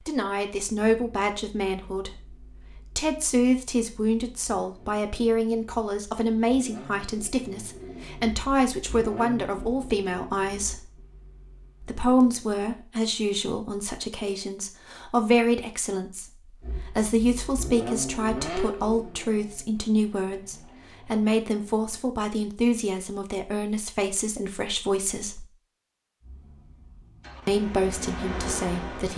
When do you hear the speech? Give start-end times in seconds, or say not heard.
0.1-10.9, 11.8-25.4, 27.4-29.1.